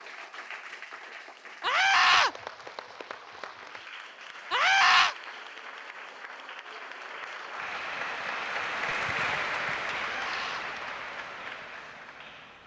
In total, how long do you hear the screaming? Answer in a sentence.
The screaming can be heard for 2 seconds in total.